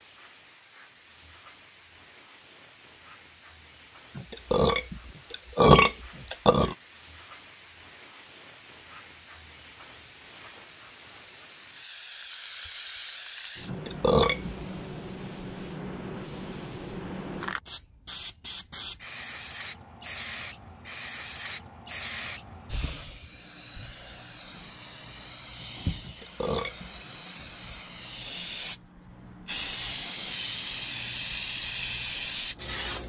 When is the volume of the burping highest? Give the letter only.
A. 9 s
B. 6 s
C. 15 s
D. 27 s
B.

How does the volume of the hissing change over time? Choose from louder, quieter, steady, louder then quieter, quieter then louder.
louder.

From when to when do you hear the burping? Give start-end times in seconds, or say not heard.
4.2-6.8, 13.7-14.6, 26.0-26.9.